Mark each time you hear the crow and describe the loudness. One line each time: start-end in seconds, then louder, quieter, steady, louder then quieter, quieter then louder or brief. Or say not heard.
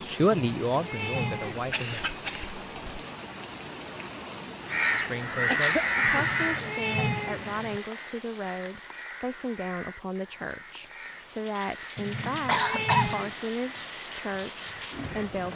4.7-15.3 quieter.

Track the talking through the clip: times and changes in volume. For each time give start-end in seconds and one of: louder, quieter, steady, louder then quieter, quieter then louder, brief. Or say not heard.
0.0-2.0 brief
4.9-15.5 steady.